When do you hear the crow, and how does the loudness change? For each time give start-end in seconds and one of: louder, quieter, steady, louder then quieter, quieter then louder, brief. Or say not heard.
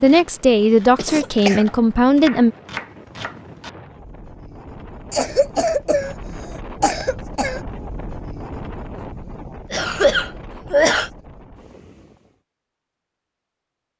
not heard.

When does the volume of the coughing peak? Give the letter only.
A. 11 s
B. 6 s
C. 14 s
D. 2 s
A.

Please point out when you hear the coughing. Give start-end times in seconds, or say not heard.
0.9-1.6, 5.1-7.6, 9.7-11.1.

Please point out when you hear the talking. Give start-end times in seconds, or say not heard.
0.0-2.5.